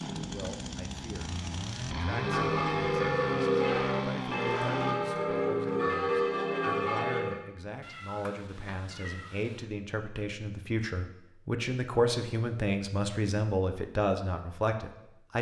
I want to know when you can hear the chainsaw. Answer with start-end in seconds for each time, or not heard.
0.0-5.0.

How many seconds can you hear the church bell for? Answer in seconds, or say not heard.
5 s.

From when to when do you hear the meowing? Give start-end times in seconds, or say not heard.
7.8-9.7.